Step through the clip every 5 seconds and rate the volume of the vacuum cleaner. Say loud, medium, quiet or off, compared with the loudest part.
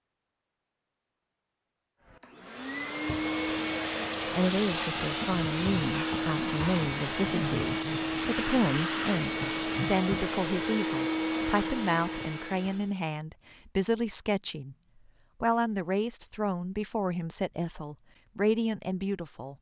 loud, loud, loud, off.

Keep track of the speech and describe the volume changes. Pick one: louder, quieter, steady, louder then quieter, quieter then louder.
steady.